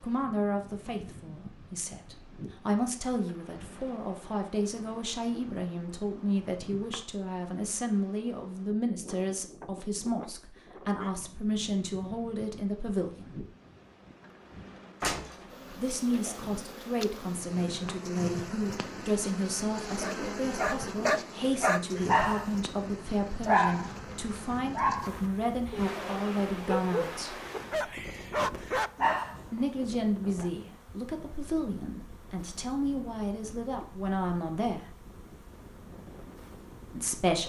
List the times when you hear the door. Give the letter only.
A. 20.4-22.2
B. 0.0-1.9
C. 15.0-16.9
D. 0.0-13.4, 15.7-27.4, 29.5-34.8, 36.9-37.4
C.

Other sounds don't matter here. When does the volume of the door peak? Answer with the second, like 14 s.
15 s.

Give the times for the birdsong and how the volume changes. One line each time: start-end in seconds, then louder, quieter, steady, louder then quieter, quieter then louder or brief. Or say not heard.
not heard.